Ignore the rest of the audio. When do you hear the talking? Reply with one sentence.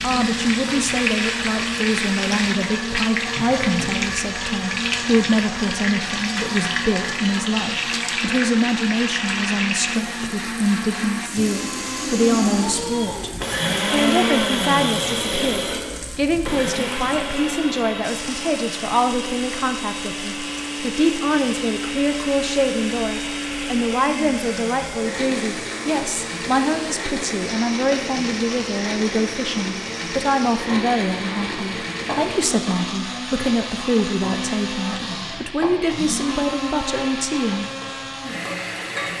You can hear the talking from 0.0 to 13.3 s and from 13.9 to 37.6 s.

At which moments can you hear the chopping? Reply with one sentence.
The chopping can't be heard in this clip.